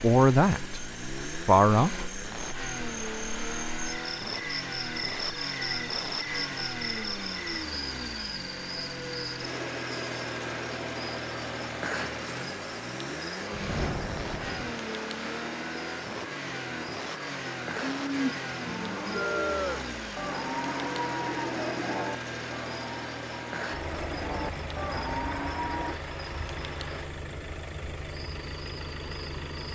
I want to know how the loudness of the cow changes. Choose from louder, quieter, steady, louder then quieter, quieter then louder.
quieter then louder.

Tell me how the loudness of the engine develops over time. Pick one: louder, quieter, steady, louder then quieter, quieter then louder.
steady.